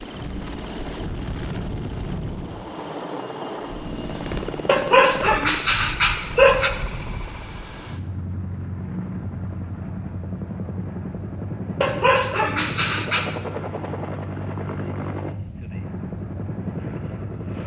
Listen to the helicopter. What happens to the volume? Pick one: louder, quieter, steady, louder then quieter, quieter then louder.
steady.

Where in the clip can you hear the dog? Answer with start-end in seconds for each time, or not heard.
4.7-6.7, 11.8-13.2.